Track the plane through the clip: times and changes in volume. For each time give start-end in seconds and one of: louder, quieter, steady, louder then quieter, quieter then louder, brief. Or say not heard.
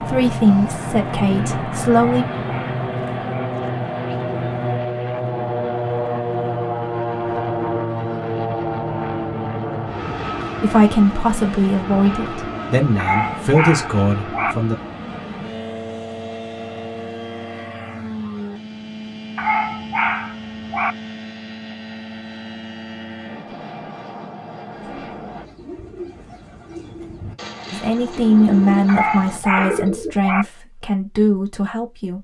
0.0-25.4 quieter.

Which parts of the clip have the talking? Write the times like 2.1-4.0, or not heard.
0.0-2.2, 10.6-14.8, 27.7-32.2.